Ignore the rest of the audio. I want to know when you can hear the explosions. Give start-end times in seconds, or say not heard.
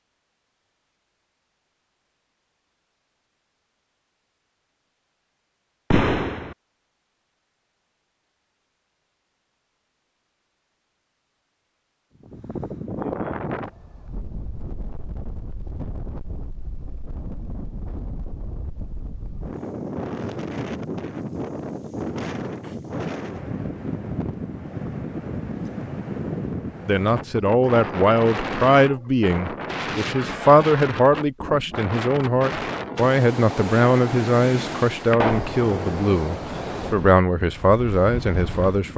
5.9-6.5, 35.1-35.6.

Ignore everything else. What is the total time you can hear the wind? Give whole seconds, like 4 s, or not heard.
27 s.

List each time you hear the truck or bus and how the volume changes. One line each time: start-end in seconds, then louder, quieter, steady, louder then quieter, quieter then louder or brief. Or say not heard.
not heard.